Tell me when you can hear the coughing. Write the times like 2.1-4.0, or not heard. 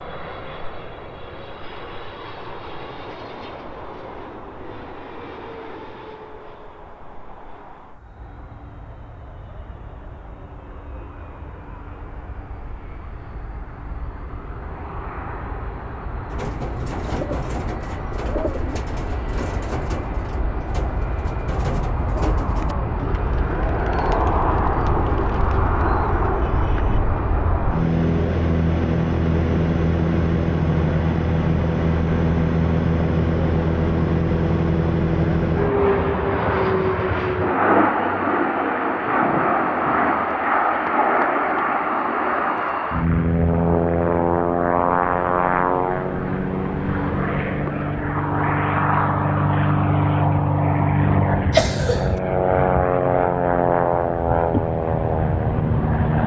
51.5-52.2.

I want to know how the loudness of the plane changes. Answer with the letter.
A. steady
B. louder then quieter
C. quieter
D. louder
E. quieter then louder
D.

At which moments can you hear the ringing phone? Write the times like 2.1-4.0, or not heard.
not heard.